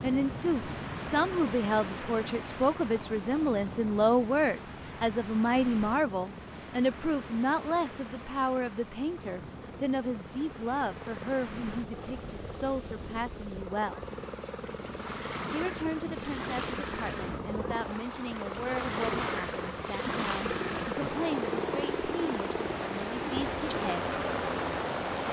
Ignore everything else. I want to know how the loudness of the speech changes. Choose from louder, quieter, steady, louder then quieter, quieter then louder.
quieter.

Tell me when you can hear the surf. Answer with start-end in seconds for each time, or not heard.
0.0-25.2.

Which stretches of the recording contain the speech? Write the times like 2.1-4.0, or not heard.
0.0-14.1, 15.5-24.1.